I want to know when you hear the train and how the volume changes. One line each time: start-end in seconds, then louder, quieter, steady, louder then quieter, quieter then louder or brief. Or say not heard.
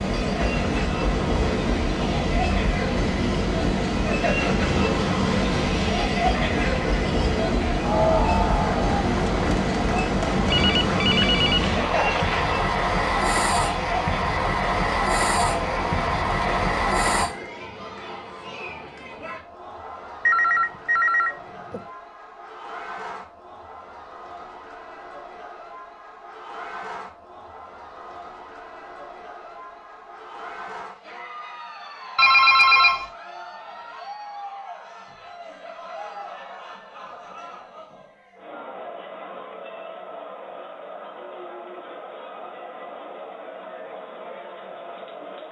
0.0-17.3 steady.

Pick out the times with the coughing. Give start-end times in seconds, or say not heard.
not heard.